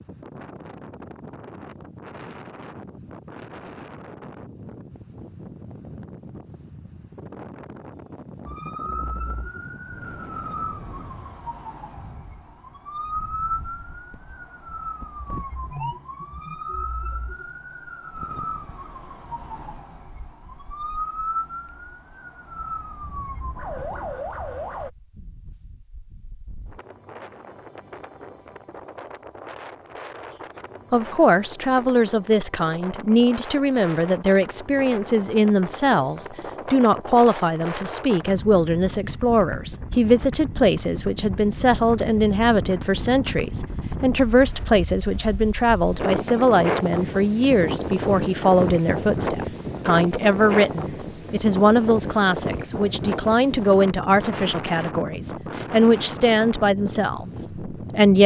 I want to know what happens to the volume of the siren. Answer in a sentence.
The loudness of the siren stays about the same.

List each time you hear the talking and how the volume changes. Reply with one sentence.
The talking can be heard from 30.9 to 58.2 s, at a steady volume.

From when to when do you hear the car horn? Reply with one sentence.
You can't hear the car horn here.